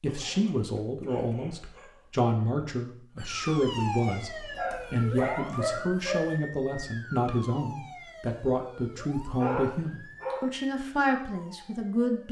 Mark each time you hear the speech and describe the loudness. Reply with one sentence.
The speech can be heard from 0.0 to 12.2 s, at a steady volume.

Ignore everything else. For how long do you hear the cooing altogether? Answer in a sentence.
You can't hear the cooing here.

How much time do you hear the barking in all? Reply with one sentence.
You can hear the barking for 5 seconds altogether.